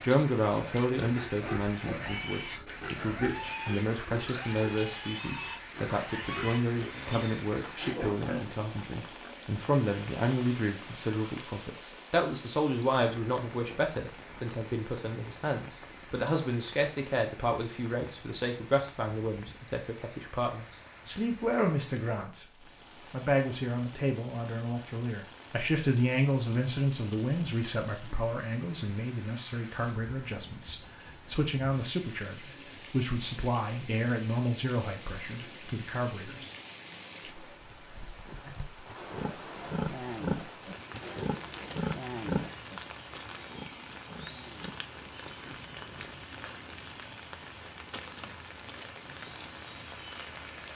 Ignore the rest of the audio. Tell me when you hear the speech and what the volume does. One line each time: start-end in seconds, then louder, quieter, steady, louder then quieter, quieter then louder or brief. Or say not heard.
0.0-36.5 steady.